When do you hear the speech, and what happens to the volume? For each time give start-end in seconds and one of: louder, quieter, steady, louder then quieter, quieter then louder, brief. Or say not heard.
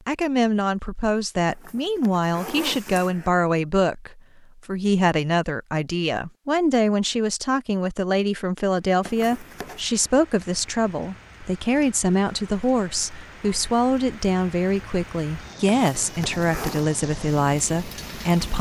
0.1-18.5 steady.